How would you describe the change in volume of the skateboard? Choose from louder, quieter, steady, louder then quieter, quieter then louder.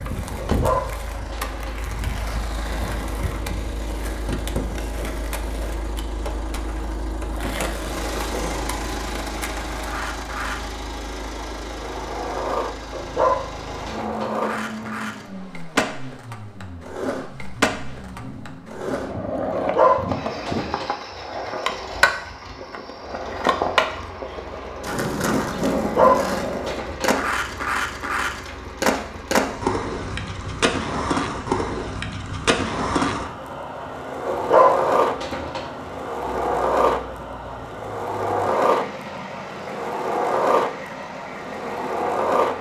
louder.